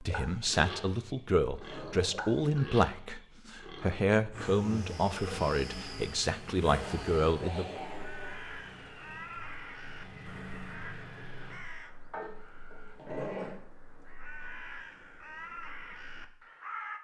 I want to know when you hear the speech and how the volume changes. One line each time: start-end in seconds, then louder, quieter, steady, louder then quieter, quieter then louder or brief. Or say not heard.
0.0-7.7 steady.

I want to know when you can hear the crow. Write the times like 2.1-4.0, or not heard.
7.8-16.9.